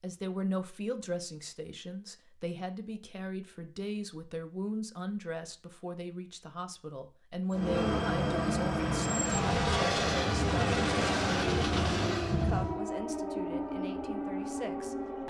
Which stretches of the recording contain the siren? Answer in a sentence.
The siren can be heard from 9.3 to 15.2 s.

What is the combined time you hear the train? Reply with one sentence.
You can hear the train for 5 seconds altogether.